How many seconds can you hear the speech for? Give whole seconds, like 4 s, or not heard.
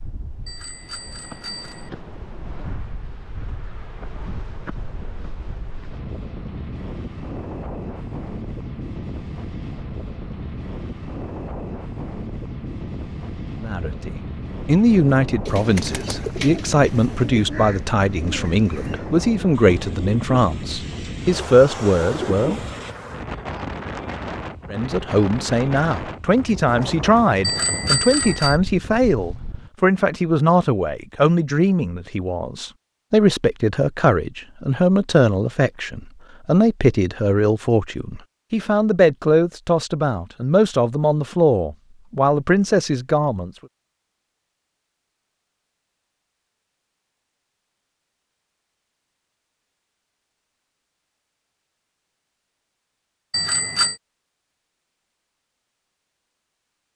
28 s.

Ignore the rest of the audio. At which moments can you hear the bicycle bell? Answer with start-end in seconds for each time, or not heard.
0.5-1.9, 27.4-28.6, 53.3-54.0.